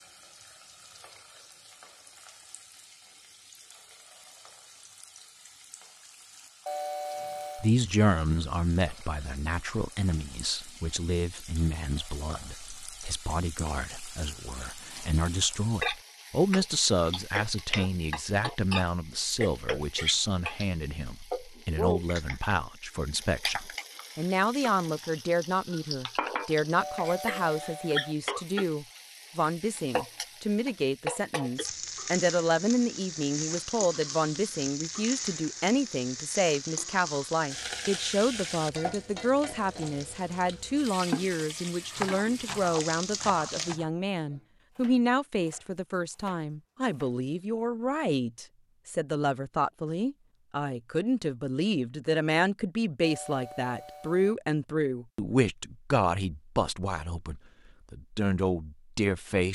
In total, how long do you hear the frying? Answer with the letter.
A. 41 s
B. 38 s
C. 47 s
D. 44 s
D.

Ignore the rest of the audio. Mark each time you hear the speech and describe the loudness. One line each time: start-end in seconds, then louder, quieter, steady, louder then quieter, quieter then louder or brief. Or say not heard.
7.5-59.5 steady.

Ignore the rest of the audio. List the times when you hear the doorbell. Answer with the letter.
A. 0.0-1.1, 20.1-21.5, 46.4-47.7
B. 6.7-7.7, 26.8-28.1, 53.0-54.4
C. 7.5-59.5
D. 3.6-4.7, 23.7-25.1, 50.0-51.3
B.